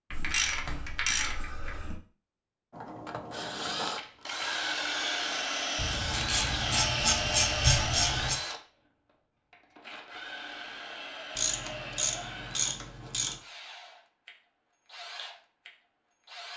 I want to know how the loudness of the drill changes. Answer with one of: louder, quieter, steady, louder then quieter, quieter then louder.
quieter.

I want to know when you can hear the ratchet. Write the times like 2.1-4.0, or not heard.
0.1-1.9, 5.8-8.4, 11.3-13.3.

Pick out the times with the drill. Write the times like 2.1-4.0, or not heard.
2.7-16.5.